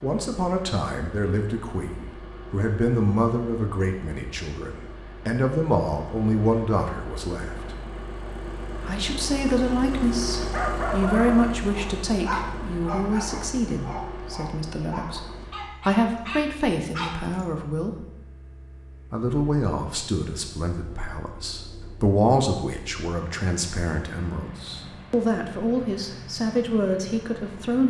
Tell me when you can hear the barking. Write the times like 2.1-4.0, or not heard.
10.5-17.4.